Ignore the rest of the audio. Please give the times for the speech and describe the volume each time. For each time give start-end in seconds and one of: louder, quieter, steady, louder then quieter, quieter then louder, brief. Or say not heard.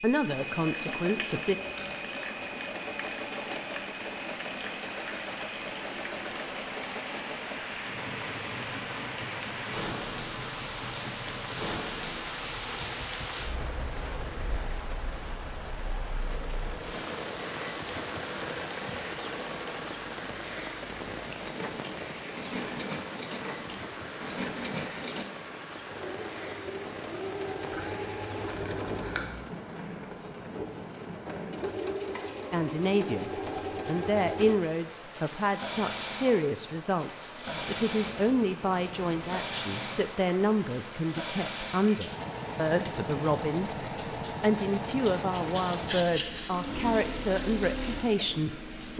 0.0-1.6 brief
32.5-48.9 steady.